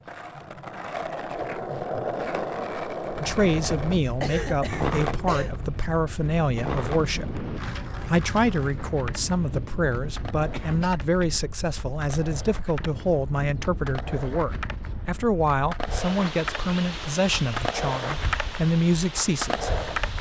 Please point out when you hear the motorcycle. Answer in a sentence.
The motorcycle can't be heard in this clip.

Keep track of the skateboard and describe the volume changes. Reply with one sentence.
The volume of the skateboard goes down, then up.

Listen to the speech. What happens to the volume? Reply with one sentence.
The volume of the speech stays about the same.